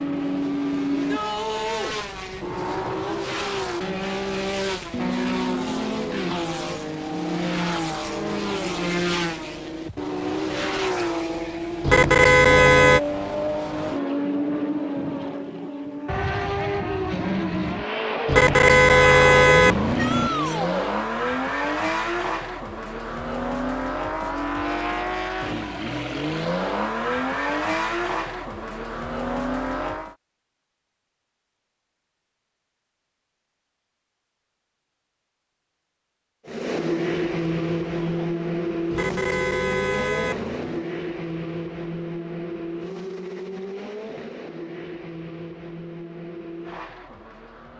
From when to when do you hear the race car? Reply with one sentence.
The race car can be heard from 0.0 to 30.1 s and from 36.5 to 47.7 s.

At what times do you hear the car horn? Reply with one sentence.
You can hear the car horn from 11.8 to 13.0 s, from 18.2 to 20.3 s and from 38.9 to 40.9 s.